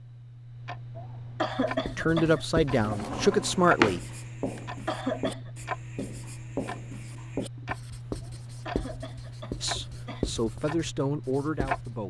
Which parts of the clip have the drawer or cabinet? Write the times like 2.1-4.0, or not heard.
2.7-4.0.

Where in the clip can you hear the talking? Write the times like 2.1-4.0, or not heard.
1.9-4.0, 9.6-12.0.